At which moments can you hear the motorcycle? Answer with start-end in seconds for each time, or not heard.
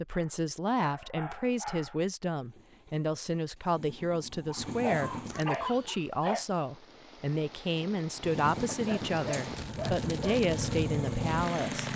2.4-5.5, 8.2-11.9.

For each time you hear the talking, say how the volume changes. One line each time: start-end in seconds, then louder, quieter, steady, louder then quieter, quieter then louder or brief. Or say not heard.
0.0-11.9 steady.